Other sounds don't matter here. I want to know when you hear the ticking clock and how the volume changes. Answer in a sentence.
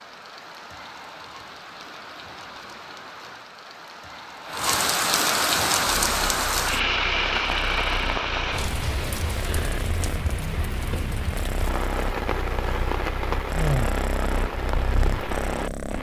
The ticking clock can't be heard in this clip.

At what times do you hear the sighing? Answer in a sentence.
You can hear the sighing from 13.5 to 14.0 s.